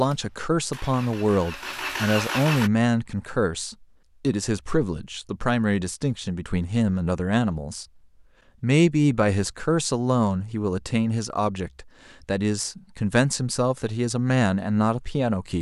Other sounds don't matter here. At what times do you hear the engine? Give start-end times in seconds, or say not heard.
0.0-2.7.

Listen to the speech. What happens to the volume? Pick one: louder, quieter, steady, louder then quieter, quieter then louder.
steady.